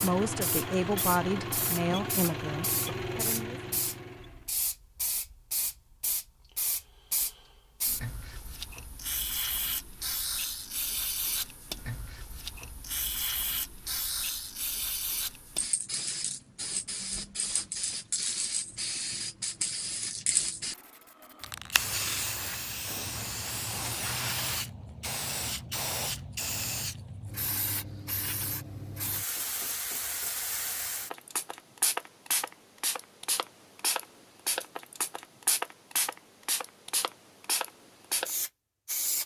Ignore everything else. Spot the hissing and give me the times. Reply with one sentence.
You can hear the hissing from 0.0 to 39.2 s.